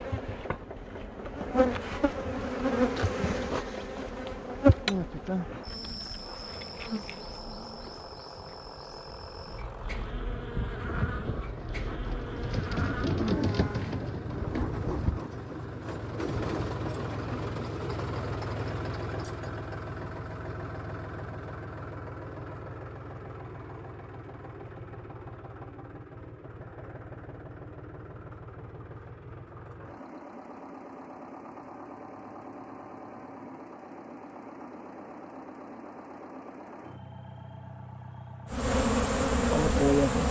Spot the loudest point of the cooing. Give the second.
13 s.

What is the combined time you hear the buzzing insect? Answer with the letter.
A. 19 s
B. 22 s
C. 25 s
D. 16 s
D.